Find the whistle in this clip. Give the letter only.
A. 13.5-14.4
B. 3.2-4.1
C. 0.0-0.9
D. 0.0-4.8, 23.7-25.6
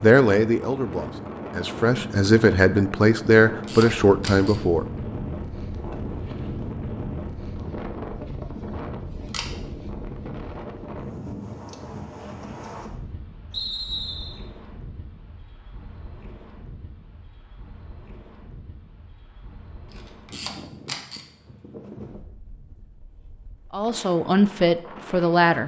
A.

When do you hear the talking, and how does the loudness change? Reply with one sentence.
You can hear the talking from 0.0 to 4.8 s, getting louder; and briefly from 23.7 to 25.6 s.